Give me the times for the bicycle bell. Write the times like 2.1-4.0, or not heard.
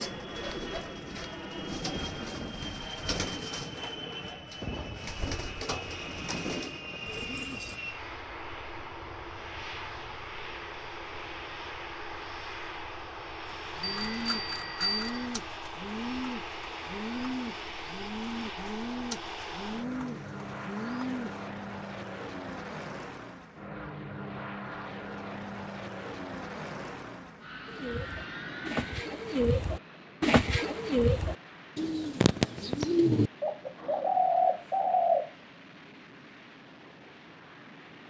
13.8-15.3.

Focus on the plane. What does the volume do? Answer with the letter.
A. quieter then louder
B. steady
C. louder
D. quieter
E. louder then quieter
D.